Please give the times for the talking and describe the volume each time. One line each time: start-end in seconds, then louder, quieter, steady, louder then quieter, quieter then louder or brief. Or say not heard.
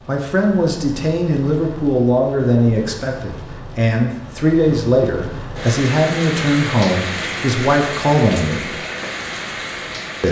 0.1-8.8 steady.